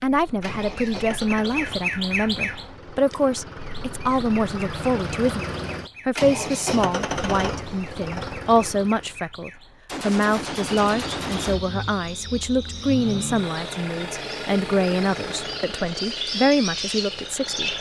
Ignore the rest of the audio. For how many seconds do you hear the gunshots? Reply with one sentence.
The gunshots can be heard for 2 seconds in total.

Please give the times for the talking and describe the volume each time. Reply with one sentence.
You can hear the talking from 0.0 to 17.7 s, at a steady volume.